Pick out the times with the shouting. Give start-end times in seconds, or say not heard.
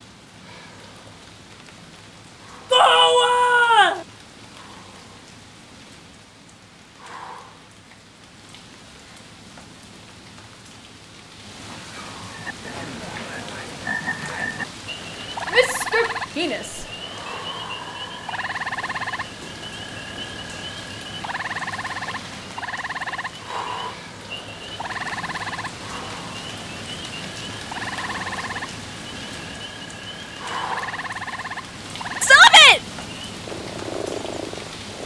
2.7-4.0, 15.5-16.9, 32.2-32.8.